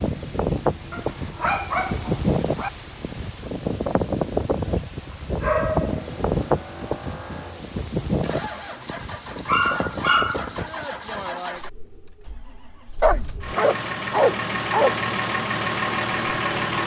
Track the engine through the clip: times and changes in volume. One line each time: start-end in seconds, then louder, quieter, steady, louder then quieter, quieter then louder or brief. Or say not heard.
0.0-16.8 louder.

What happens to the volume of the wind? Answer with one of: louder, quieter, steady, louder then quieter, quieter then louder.
quieter.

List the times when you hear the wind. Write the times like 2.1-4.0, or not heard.
0.0-11.3.